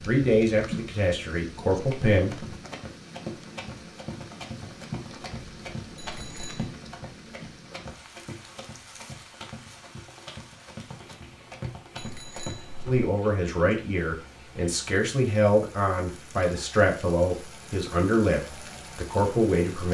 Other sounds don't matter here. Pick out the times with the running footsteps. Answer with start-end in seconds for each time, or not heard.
1.7-13.1.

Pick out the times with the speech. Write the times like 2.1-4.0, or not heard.
0.0-2.5, 12.8-19.8.